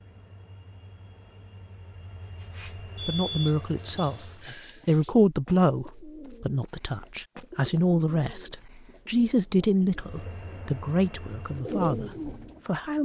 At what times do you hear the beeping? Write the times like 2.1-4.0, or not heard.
3.0-4.5.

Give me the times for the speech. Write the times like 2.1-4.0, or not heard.
2.8-13.0.